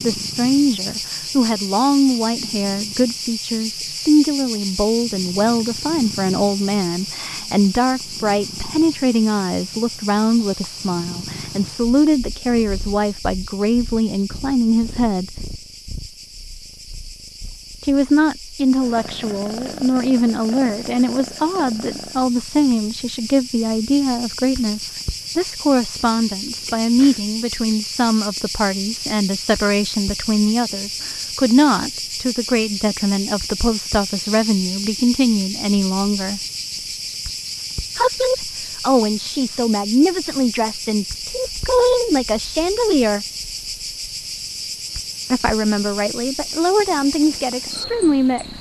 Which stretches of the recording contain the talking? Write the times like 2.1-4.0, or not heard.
0.0-15.3, 17.8-36.4, 38.0-43.2, 45.3-48.5.